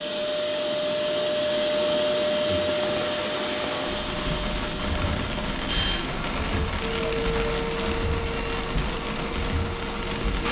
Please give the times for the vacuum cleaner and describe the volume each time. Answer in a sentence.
You can hear the vacuum cleaner from 0.0 to 10.4 s, getting quieter.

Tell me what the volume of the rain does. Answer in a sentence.
The loudness of the rain stays about the same.